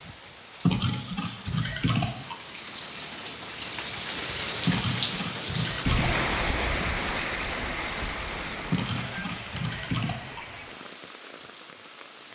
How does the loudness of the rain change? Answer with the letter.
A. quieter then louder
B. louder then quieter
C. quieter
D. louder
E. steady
B.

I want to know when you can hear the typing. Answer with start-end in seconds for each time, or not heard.
0.6-2.4, 4.7-6.2, 8.7-10.4.